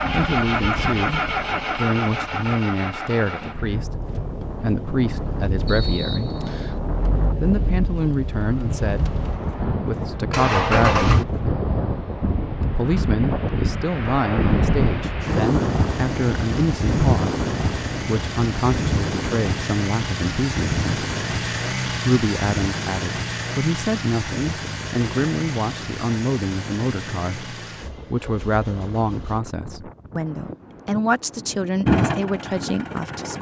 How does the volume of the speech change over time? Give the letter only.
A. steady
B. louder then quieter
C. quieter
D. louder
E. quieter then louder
A.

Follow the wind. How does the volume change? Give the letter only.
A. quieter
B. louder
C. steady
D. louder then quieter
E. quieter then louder
D.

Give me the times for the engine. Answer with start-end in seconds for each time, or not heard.
0.0-11.4, 15.2-29.4, 31.9-33.3.